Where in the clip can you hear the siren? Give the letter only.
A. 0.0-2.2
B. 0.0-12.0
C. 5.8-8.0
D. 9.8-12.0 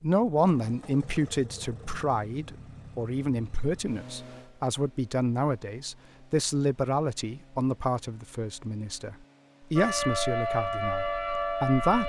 D.